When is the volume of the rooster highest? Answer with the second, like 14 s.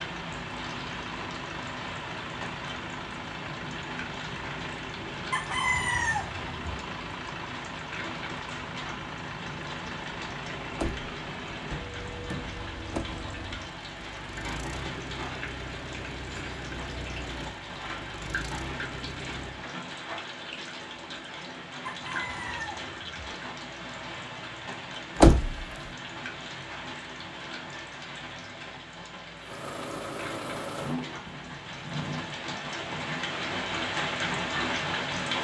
6 s.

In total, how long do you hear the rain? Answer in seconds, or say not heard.
35 s.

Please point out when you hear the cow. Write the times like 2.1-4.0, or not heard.
not heard.